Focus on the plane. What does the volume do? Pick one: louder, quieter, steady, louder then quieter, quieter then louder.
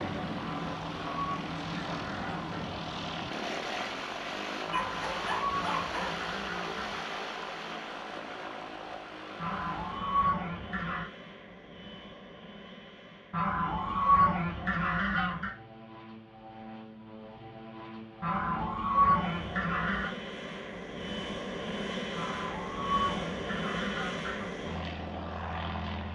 quieter then louder.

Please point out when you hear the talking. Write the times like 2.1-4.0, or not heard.
not heard.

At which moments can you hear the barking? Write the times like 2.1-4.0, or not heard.
4.7-6.2.